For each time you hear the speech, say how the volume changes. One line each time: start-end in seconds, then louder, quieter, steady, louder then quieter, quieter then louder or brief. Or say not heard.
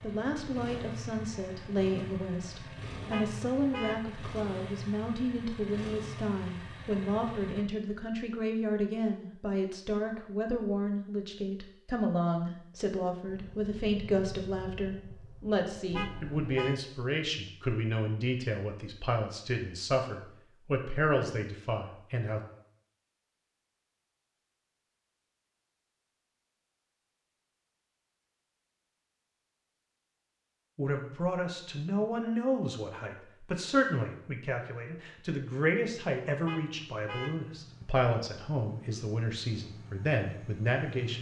0.0-22.4 steady
30.8-41.1 steady.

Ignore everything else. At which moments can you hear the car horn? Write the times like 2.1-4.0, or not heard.
3.1-4.0, 15.9-16.8, 36.5-37.4.